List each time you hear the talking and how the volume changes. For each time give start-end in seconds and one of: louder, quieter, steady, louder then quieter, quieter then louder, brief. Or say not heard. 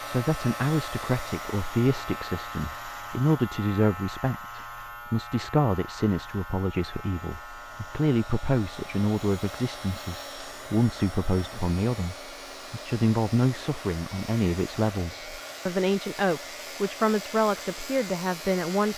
0.1-18.9 steady.